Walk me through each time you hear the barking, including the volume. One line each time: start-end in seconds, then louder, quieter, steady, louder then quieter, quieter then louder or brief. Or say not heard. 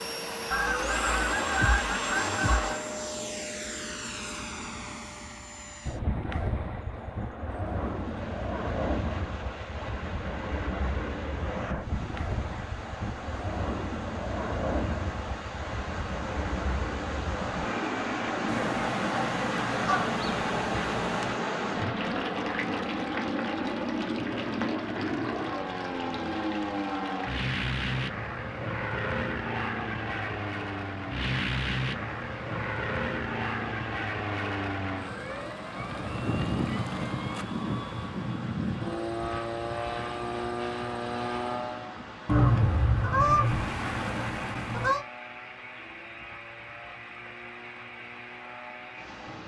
not heard.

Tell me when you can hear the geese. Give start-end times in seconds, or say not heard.
0.5-2.8, 18.4-21.4, 42.2-45.0.